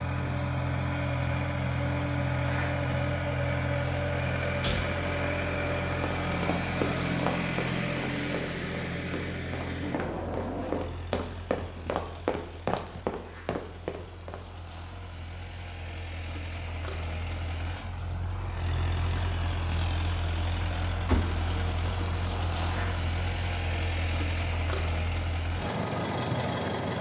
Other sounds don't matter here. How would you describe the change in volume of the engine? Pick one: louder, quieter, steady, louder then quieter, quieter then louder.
quieter then louder.